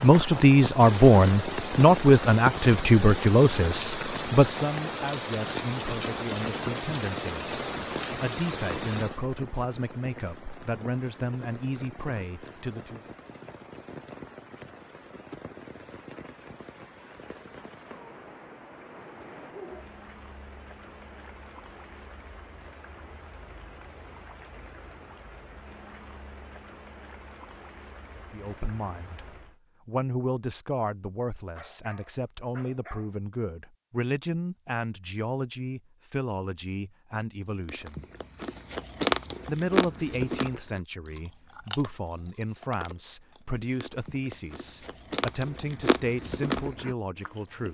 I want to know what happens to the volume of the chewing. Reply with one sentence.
The volume of the chewing goes down, then up.